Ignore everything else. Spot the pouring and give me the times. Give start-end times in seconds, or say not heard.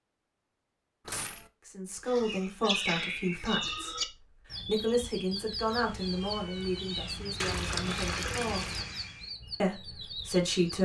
7.4-8.8.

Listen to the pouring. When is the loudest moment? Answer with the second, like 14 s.
8 s.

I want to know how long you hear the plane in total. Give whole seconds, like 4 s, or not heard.
2 s.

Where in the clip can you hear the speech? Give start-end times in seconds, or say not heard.
1.6-8.7, 9.6-10.7.